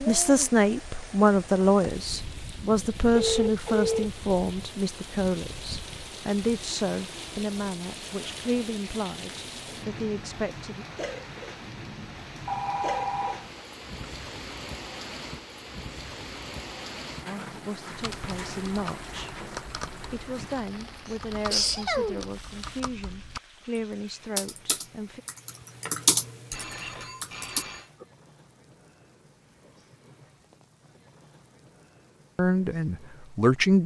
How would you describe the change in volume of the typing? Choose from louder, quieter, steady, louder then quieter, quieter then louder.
quieter then louder.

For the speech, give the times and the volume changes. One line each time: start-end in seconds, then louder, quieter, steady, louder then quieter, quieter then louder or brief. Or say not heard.
0.0-10.8 quieter
17.2-19.4 brief
20.0-25.2 steady
32.4-33.8 brief.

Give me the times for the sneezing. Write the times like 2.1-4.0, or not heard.
21.1-22.2.